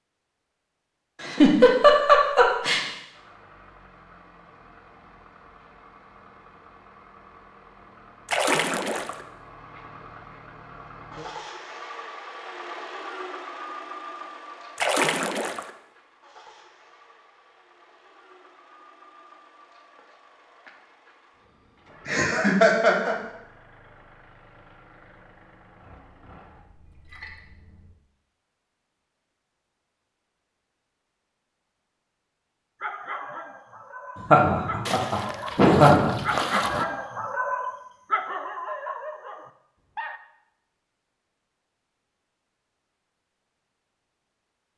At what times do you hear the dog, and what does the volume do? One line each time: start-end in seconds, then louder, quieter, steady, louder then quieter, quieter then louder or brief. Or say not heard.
32.8-40.2 louder then quieter.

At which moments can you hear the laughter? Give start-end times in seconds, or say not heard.
1.2-2.9, 22.1-23.1, 34.3-36.1.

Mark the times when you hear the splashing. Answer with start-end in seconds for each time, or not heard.
8.2-9.2, 14.8-15.7, 26.6-27.9, 34.9-36.9.